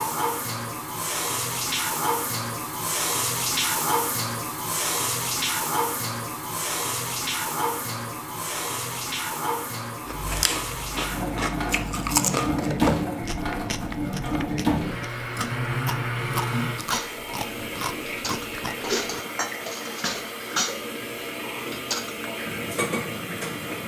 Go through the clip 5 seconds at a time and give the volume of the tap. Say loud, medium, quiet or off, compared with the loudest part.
loud, loud, loud, loud, medium.